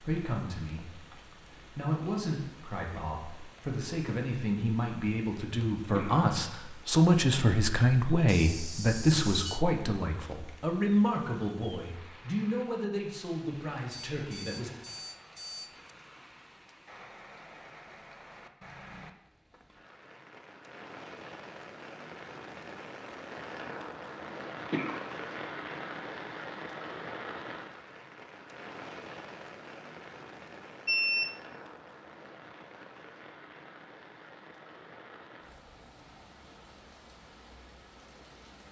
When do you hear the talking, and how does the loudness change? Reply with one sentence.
You can hear the talking from 0.0 to 14.7 s, getting louder then quieter.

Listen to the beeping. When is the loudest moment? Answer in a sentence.
The volume of the beeping peaks at 31 seconds.